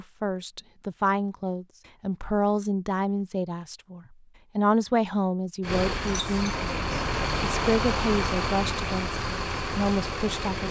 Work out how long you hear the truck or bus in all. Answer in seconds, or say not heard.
5 s.